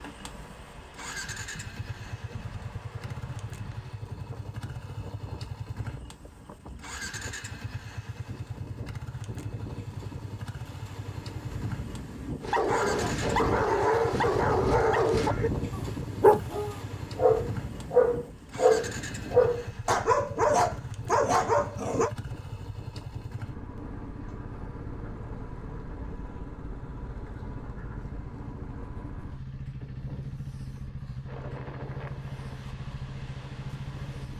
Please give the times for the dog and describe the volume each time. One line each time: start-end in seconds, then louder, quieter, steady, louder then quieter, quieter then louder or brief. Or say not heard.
12.4-22.1 steady.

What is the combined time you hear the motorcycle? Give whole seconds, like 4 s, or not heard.
34 s.